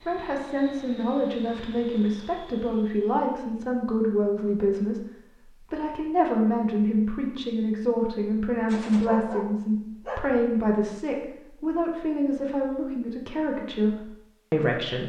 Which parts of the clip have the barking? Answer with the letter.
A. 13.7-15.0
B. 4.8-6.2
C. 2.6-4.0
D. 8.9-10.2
D.